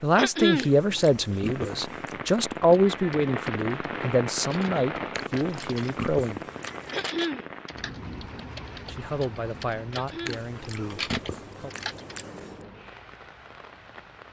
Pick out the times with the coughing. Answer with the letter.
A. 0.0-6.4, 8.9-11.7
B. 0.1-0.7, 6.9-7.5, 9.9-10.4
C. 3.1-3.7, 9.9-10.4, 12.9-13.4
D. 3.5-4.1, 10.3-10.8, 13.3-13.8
B.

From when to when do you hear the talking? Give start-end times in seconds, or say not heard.
0.0-6.4, 8.9-11.7.